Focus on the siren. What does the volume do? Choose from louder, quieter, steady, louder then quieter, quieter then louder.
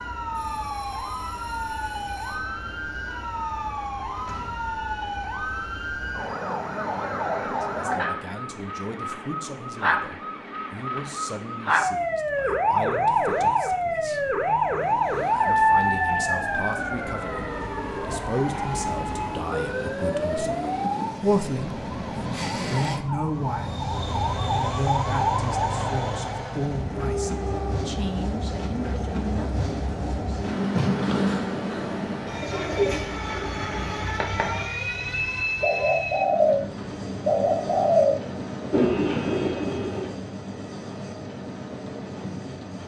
louder then quieter.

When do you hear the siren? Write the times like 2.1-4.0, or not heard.
0.0-27.9.